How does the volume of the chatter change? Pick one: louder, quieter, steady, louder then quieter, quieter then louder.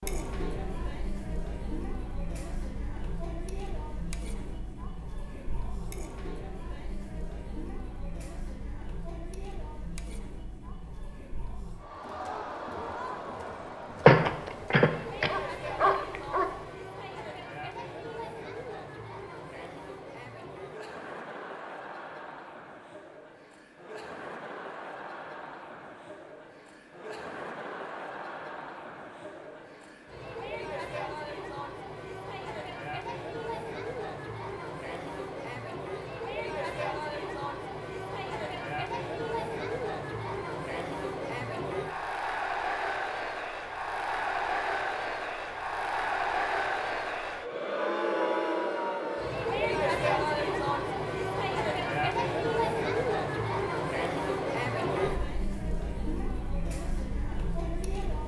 louder.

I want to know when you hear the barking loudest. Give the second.
14 s.